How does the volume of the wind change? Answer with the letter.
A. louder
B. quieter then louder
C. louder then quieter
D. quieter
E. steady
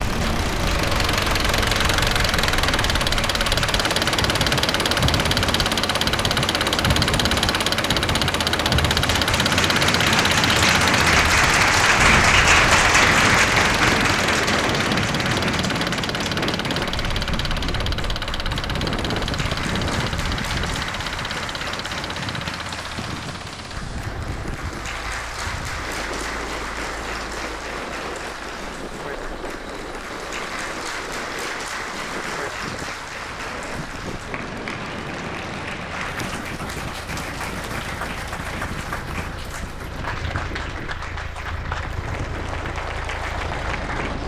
D.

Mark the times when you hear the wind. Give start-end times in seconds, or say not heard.
0.0-44.2.